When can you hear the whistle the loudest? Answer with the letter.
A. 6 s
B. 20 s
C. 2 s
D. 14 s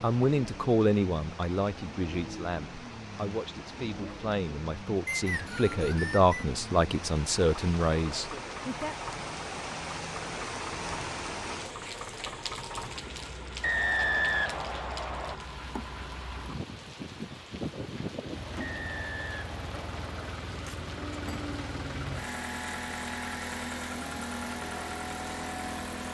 D.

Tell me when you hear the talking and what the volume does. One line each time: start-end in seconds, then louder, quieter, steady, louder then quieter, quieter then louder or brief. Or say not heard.
0.0-8.9 quieter then louder.